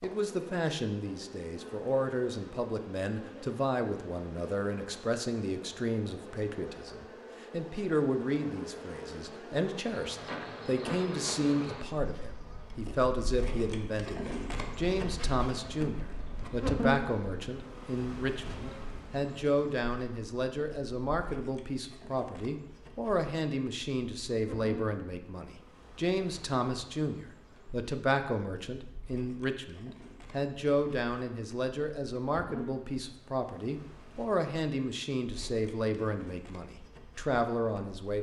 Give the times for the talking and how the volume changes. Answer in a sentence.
The talking can be heard from 0.0 to 38.1 s, at a steady volume.